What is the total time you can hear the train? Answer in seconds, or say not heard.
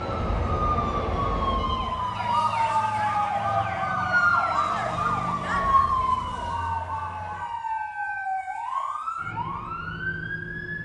2 s.